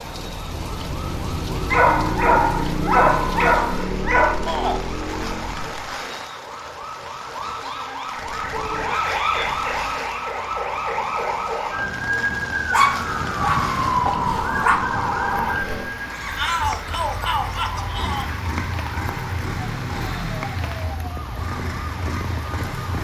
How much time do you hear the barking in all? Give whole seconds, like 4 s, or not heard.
5 s.